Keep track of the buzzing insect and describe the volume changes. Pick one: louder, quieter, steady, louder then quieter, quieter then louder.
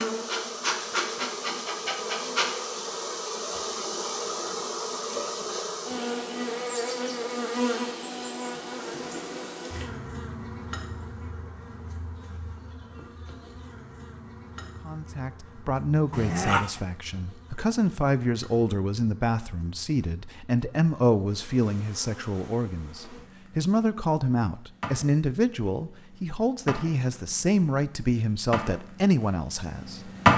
quieter then louder.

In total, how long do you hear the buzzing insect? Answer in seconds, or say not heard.
30 s.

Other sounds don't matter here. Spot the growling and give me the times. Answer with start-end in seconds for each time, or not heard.
16.1-16.8.